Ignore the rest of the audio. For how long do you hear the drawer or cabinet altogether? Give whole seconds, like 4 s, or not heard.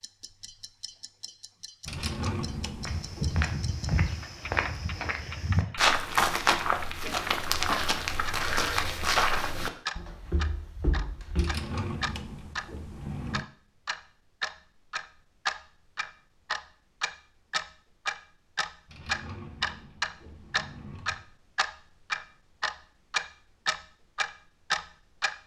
6 s.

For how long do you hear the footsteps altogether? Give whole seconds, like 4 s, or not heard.
9 s.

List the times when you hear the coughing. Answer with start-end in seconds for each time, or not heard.
not heard.